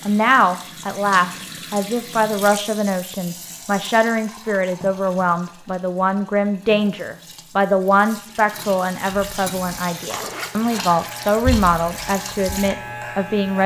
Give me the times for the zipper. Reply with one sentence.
The zipper can be heard from 10.1 to 10.9 s.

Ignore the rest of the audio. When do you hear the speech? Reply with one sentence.
You can hear the speech from 0.1 to 13.6 s.